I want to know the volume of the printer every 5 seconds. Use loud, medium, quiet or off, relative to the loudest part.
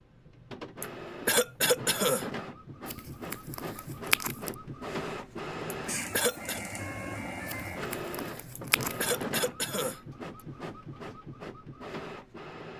loud, loud, medium.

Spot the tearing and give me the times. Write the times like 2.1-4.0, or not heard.
2.9-4.5, 7.5-9.1.